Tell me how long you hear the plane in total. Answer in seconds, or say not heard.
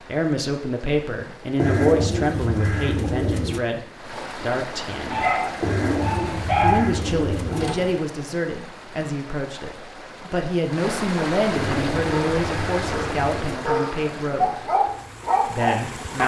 not heard.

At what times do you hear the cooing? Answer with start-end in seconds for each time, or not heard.
1.6-3.6, 5.6-7.7, 11.5-13.6.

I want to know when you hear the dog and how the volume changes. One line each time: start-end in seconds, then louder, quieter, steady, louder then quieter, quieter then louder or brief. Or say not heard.
5.0-8.0 brief
12.1-16.2 louder.